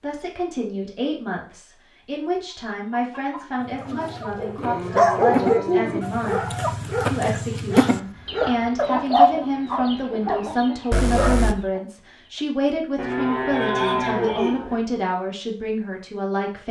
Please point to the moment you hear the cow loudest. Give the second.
14 s.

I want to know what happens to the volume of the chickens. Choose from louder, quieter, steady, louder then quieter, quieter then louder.
louder then quieter.